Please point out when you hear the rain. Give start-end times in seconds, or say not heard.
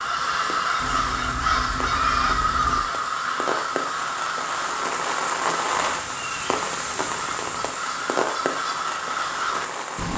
0.0-10.1.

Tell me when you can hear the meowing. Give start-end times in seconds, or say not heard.
0.8-2.8, 5.8-7.8.